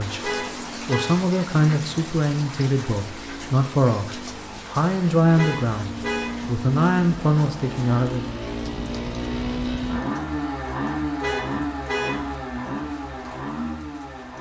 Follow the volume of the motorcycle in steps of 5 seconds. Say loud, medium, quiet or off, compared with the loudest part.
medium, loud, loud.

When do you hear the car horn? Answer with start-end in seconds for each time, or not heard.
0.2-1.1, 5.3-6.3, 11.2-12.2.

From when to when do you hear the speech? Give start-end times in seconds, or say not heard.
0.0-8.2.